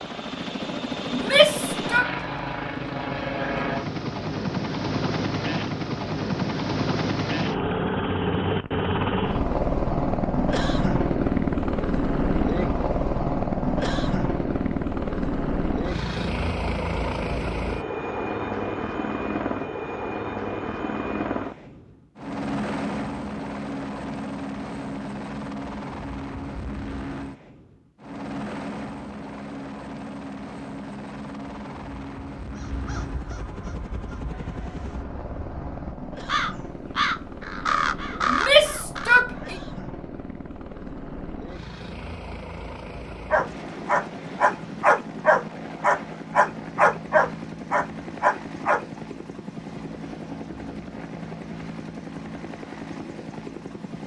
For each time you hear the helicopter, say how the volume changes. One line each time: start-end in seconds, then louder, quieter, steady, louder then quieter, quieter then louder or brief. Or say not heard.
0.0-54.0 quieter.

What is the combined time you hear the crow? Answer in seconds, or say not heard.
7 s.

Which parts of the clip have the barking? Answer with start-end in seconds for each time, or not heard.
43.3-48.9.